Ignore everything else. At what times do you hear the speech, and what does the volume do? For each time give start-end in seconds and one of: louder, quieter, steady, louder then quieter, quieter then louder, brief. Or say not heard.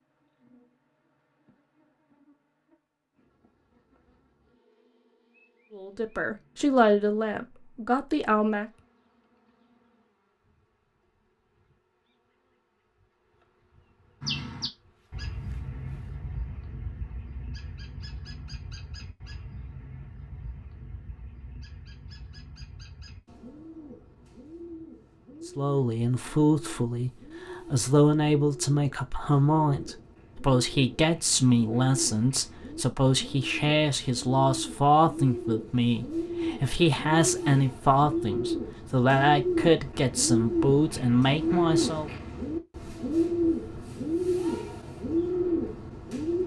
5.8-8.7 brief
25.4-42.1 steady.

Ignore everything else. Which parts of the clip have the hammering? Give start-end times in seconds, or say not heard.
not heard.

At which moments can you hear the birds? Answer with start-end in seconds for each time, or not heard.
14.2-46.4.